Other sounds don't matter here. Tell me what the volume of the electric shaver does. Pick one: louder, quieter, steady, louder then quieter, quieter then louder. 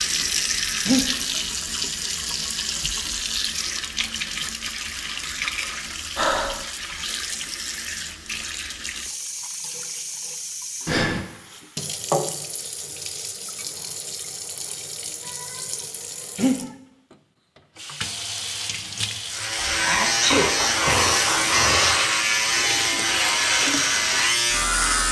steady.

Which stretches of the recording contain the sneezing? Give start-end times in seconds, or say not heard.
19.8-20.5.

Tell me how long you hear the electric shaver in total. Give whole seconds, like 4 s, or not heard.
6 s.